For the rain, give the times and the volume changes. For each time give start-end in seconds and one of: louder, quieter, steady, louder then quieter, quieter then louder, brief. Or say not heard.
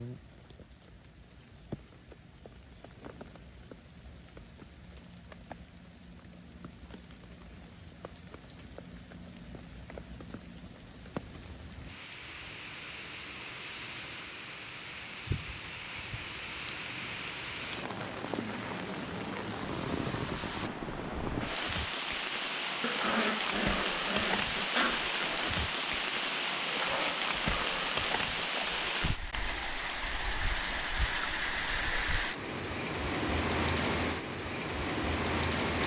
0.0-35.8 louder.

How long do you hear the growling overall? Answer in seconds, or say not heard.
2 s.